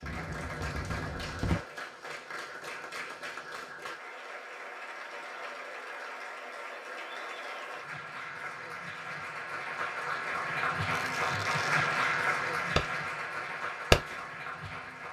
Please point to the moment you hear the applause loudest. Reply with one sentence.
The volume of the applause peaks at 12 seconds.